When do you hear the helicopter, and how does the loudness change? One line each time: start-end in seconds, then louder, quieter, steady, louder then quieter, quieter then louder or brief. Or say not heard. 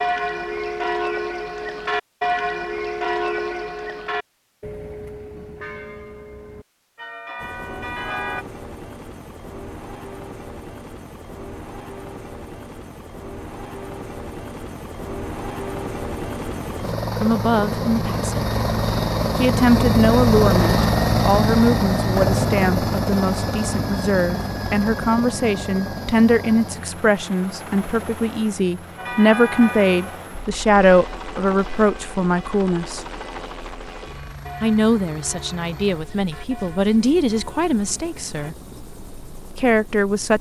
7.3-40.3 louder then quieter.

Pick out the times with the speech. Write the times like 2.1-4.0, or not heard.
17.2-18.4, 19.4-33.0, 34.6-38.6, 39.5-40.3.